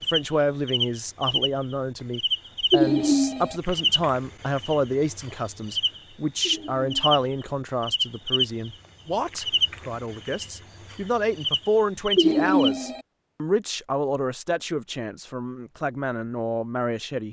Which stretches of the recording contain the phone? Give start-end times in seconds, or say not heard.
2.7-3.6, 6.4-7.0, 12.2-13.0.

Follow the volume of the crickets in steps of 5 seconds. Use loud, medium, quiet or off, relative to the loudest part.
loud, loud, loud, off.